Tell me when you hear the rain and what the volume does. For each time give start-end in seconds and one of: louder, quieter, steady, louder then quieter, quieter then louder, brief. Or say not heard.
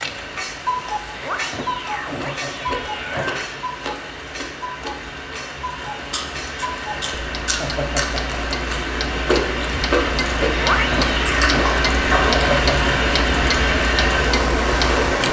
0.0-15.2 louder.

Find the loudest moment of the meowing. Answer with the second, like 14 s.
11 s.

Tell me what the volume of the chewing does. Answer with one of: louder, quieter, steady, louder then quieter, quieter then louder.
louder.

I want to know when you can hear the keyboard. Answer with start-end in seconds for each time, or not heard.
not heard.